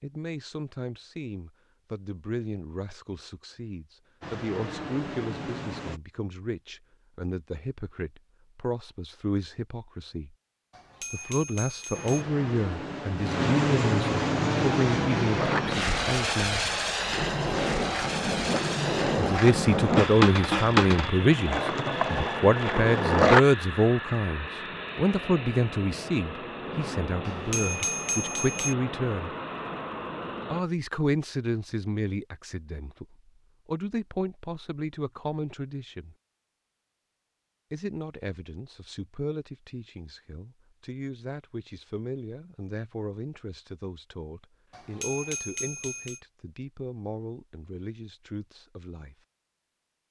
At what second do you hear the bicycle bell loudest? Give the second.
28 s.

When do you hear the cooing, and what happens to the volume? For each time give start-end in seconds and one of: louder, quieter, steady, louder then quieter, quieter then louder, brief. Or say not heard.
not heard.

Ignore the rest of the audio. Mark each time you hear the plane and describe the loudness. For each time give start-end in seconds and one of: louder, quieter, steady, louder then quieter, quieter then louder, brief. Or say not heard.
4.2-6.0 brief
11.9-30.6 quieter.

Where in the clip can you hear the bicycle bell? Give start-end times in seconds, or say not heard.
10.7-12.2, 27.2-28.8, 44.7-46.2.